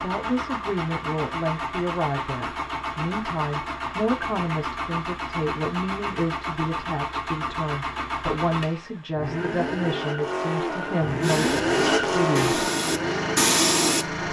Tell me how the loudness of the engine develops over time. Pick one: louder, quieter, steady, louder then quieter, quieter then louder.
louder.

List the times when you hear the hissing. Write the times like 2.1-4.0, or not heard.
11.2-14.2.